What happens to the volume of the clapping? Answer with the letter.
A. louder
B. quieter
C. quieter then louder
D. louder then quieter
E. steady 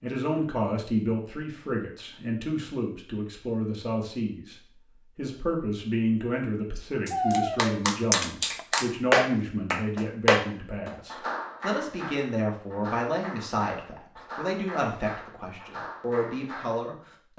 B.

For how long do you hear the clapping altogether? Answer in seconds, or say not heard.
10 s.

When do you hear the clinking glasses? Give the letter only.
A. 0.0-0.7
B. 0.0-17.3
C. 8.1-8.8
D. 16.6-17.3
C.